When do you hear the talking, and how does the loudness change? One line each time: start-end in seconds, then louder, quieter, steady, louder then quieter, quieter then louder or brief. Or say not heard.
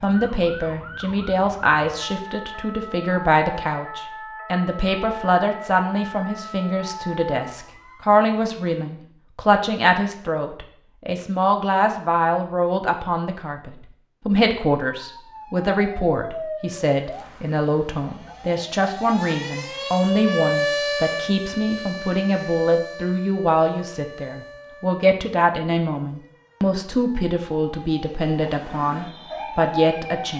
0.0-30.3 steady.